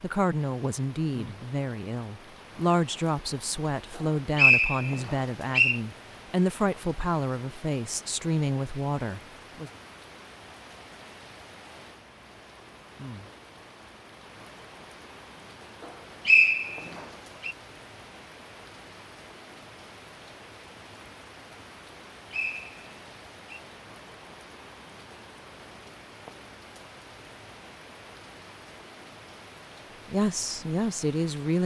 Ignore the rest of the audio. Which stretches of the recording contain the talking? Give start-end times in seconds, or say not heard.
0.0-9.7, 30.1-31.6.